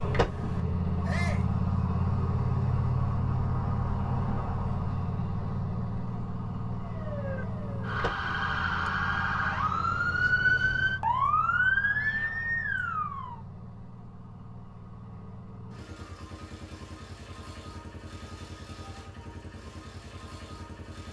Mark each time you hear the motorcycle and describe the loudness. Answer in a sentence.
You can hear the motorcycle from 0.0 to 21.0 s, getting quieter.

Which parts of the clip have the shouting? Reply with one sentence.
You can hear the shouting from 1.1 to 1.5 s.